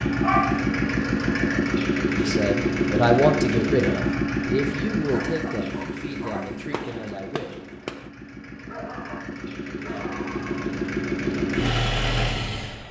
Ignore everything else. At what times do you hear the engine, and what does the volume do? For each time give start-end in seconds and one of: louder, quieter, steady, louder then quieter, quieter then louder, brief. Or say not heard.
0.0-12.8 quieter then louder.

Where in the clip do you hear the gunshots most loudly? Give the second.
8 s.